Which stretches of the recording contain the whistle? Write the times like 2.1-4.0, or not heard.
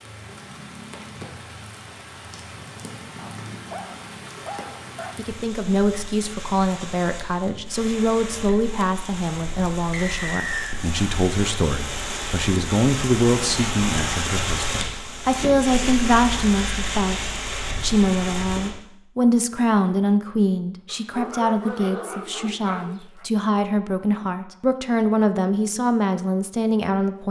9.9-10.8.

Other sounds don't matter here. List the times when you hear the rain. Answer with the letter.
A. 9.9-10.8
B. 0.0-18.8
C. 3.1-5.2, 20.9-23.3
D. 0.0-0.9
B.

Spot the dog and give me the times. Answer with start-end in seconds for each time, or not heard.
3.1-5.2, 20.9-23.3.